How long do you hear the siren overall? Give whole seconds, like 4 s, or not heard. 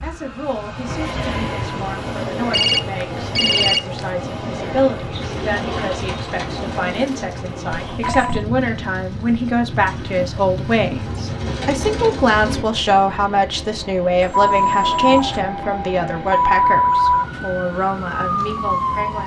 5 s.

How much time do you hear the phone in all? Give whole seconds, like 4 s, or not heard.
3 s.